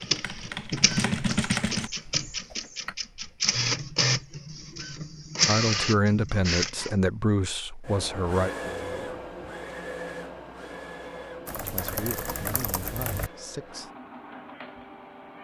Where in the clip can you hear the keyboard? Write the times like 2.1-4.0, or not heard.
0.0-1.9, 2.5-3.0, 11.4-13.3.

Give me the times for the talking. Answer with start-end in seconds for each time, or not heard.
5.5-9.3, 11.6-13.9.